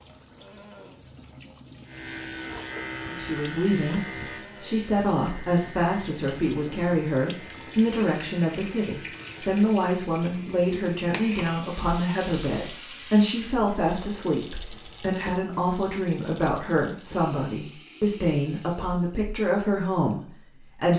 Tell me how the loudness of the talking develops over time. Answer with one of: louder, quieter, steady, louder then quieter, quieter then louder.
steady.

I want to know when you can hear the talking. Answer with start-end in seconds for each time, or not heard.
3.1-20.9.